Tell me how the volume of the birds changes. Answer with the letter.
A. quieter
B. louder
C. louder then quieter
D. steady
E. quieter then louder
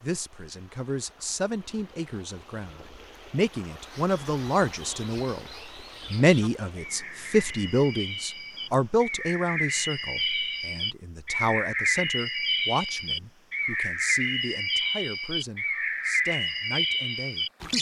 B.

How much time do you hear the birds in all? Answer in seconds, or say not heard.
14 s.